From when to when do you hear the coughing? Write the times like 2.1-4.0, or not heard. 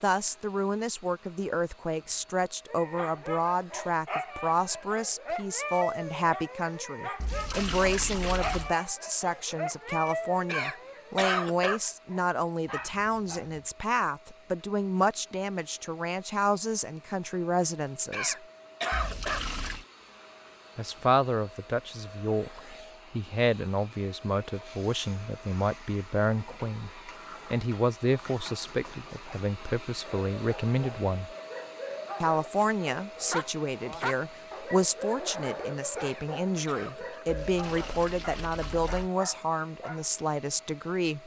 10.4-11.8, 18.1-19.4, 36.0-37.2.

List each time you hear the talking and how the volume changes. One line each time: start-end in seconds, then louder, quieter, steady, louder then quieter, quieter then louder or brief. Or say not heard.
0.0-18.4 steady
20.8-31.3 steady
32.2-41.2 steady.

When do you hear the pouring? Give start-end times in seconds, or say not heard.
7.2-8.8, 18.9-19.9, 37.2-39.1.